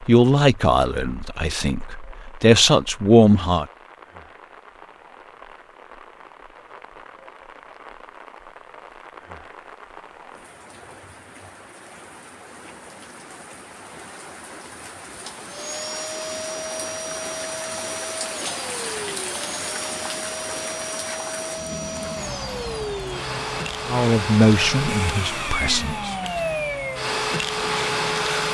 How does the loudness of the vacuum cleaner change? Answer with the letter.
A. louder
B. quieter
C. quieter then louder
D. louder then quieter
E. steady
A.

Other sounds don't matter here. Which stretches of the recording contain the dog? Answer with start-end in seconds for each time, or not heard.
not heard.